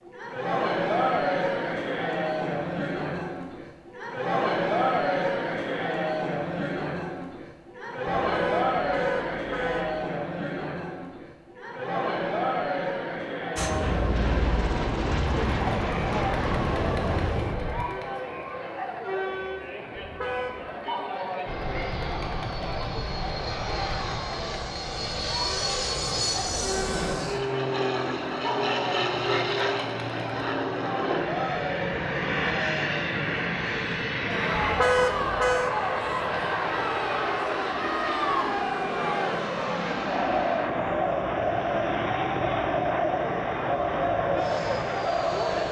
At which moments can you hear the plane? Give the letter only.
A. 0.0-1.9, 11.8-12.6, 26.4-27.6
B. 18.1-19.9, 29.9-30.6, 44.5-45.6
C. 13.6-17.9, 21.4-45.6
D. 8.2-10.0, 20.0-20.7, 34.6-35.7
C.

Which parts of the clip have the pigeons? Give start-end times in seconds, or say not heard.
not heard.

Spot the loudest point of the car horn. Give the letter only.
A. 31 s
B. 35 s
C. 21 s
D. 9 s
B.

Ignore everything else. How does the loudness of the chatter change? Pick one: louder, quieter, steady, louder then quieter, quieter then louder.
quieter then louder.